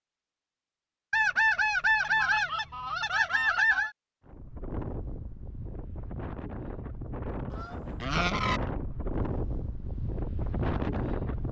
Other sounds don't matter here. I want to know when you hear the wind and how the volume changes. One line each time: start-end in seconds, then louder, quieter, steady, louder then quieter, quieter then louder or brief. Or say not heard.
4.2-11.4 louder.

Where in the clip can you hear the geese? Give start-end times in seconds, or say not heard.
1.1-3.9, 7.5-8.6.